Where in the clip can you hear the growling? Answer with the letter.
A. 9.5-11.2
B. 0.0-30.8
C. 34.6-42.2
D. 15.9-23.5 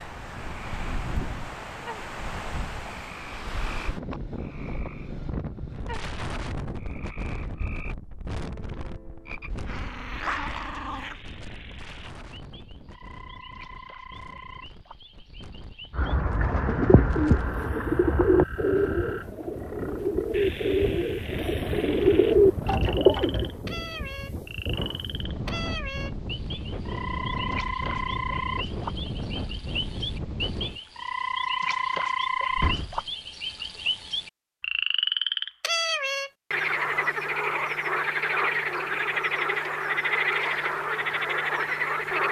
A.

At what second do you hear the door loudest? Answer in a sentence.
The volume of the door peaks at 33 seconds.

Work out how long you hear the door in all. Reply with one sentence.
The door can be heard for 2 seconds in total.